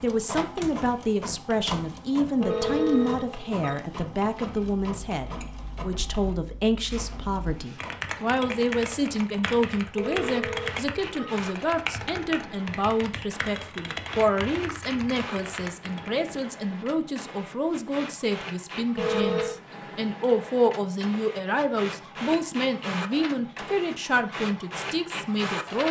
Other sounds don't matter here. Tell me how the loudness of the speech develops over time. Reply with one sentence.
The loudness of the speech stays about the same.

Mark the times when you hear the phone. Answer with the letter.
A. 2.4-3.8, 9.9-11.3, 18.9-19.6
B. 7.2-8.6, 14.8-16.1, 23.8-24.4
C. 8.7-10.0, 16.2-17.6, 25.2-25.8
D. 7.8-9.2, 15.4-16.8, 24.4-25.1
A.